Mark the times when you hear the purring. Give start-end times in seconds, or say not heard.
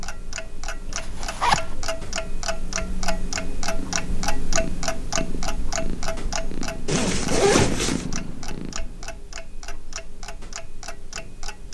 3.7-9.1.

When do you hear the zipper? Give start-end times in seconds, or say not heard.
0.9-1.8, 6.8-8.1.